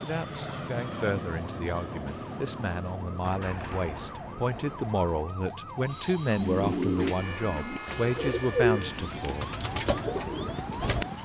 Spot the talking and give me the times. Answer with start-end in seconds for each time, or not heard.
0.0-9.5.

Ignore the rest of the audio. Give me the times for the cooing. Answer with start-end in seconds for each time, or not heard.
6.3-11.1.